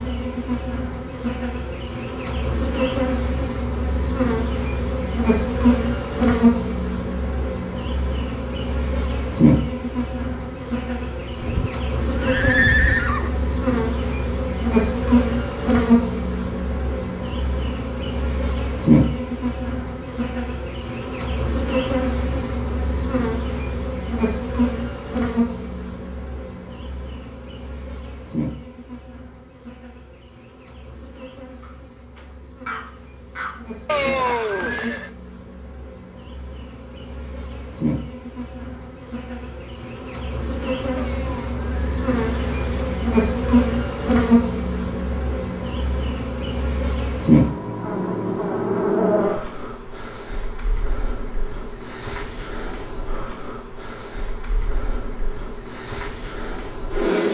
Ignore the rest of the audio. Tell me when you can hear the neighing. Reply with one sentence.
You can hear the neighing from 11.3 to 13.4 s, from 33.9 to 35.1 s and from 41.0 to 43.0 s.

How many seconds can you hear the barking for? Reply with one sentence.
The barking can be heard for 2 seconds in total.